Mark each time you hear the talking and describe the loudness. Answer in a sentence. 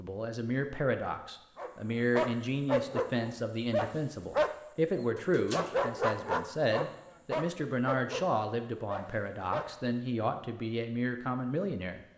You can hear the talking from 0.0 to 12.1 s, at a steady volume.